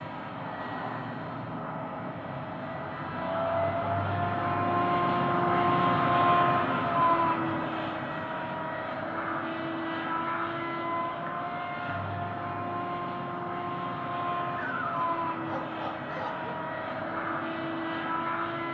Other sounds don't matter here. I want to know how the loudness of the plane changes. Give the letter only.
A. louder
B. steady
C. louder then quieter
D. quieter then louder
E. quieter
C.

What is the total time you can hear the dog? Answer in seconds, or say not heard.
2 s.